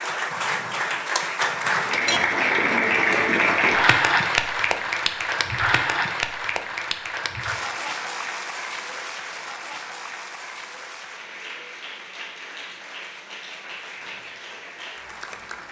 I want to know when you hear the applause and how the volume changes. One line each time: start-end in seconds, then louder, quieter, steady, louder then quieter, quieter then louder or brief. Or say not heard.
0.0-15.6 quieter.